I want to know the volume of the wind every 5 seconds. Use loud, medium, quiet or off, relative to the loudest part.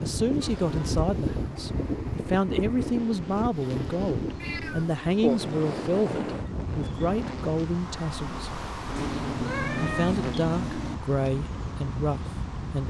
loud, loud, medium.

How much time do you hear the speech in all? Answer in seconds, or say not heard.
12 s.